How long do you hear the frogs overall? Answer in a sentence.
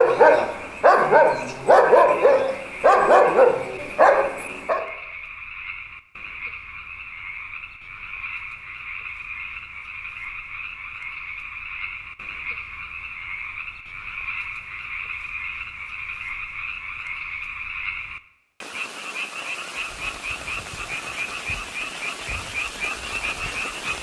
You can hear the frogs for 24 seconds altogether.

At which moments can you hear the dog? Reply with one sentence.
You can hear the dog from 0.0 to 4.8 s.